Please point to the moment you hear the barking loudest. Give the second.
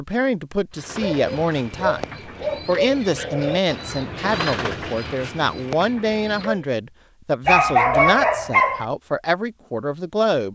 8 s.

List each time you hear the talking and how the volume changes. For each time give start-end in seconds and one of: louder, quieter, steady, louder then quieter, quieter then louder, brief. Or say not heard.
0.0-10.4 steady.